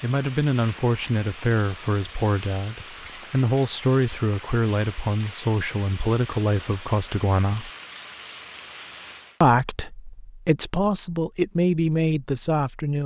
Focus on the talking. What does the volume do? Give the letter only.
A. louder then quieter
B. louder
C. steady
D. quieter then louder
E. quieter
C.